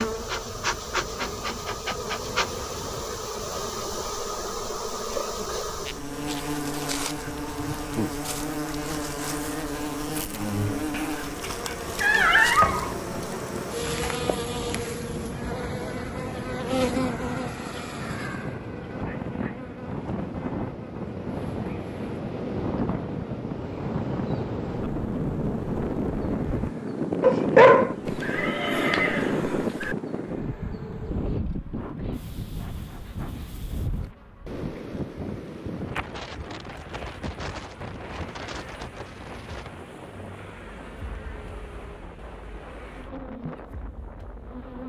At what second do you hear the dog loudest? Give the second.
28 s.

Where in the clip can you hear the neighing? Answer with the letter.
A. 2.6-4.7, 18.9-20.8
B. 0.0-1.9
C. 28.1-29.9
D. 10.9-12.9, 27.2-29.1
C.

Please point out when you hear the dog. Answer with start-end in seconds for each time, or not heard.
10.9-12.9, 27.2-29.1.